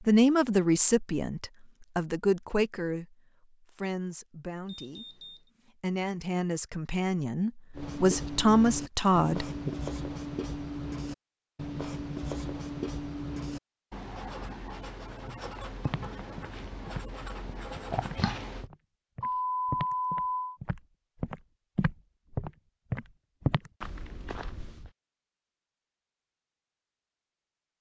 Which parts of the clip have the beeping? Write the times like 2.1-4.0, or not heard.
4.7-5.5, 19.2-20.6.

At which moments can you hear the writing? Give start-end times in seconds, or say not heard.
7.8-18.7.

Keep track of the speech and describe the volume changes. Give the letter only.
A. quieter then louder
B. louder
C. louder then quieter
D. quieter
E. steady
A.